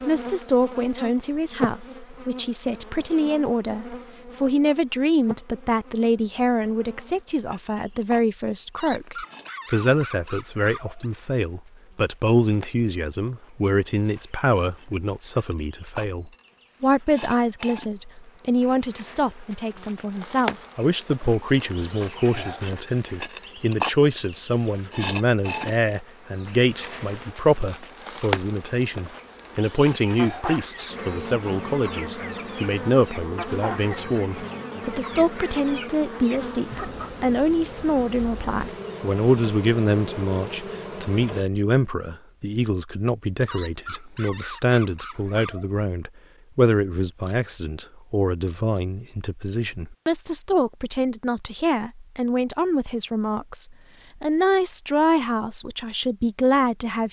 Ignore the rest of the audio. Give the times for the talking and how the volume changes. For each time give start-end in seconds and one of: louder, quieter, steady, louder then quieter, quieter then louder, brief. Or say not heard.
0.1-57.0 steady.